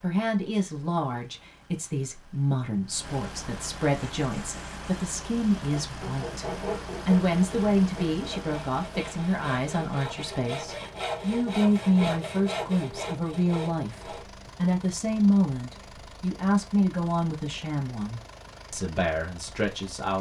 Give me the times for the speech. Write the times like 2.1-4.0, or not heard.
0.0-20.1.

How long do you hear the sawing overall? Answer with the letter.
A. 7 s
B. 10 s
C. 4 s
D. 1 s
B.